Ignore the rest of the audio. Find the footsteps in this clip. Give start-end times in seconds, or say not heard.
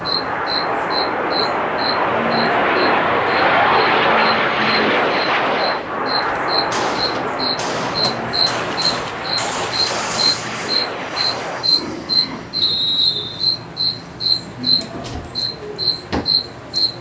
not heard.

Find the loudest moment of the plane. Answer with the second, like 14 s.
4 s.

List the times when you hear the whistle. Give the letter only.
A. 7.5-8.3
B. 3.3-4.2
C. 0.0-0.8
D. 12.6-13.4
D.